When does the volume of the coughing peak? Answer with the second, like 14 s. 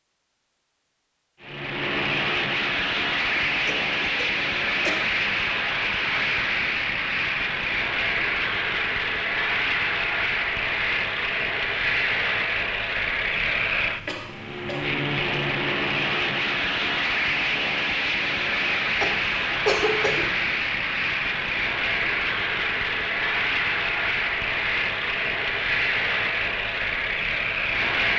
20 s.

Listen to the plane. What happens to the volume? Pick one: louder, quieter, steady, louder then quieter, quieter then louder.
steady.